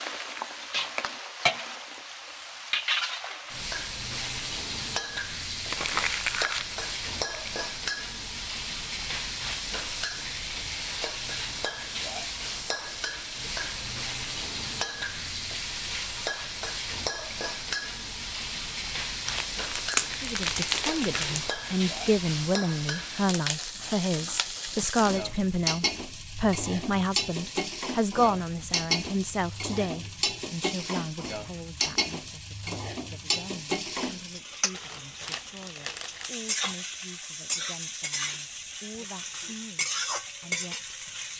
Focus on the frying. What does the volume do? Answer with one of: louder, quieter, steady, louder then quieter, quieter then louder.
steady.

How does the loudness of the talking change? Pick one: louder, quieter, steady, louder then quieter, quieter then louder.
quieter.